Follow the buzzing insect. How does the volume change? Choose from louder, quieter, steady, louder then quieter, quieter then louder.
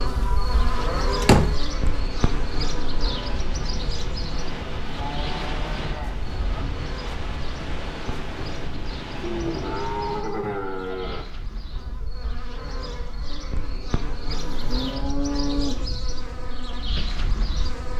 quieter then louder.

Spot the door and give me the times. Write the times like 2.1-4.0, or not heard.
1.2-1.6.